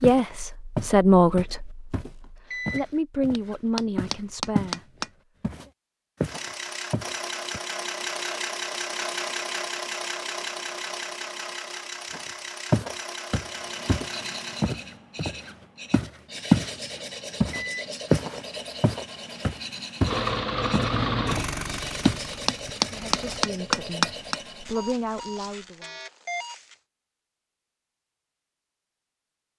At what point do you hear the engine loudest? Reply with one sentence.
The volume of the engine peaks at 21 seconds.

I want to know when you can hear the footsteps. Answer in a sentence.
The footsteps can be heard from 0.0 to 4.8 s, from 5.4 to 7.6 s, from 12.1 to 16.7 s and from 17.4 to 22.2 s.